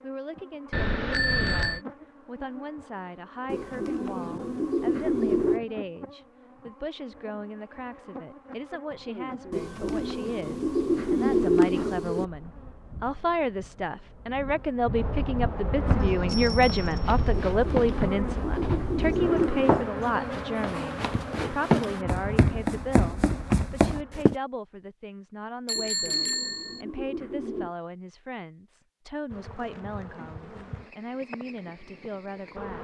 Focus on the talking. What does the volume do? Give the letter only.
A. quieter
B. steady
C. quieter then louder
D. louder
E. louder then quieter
E.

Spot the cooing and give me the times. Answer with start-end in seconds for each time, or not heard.
3.5-5.6, 9.5-12.2, 17.4-19.9, 25.8-27.8.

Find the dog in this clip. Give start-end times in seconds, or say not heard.
not heard.